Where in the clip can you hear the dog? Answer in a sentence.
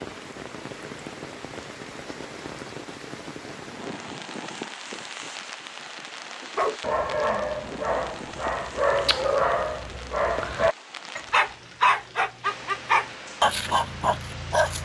You can hear the dog from 6.5 to 14.7 s.